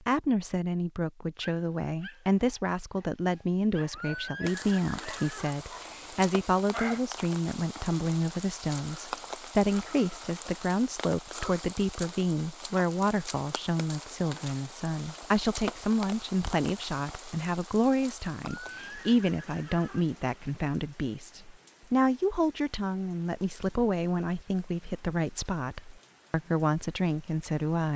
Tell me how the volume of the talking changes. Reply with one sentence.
The volume of the talking stays about the same.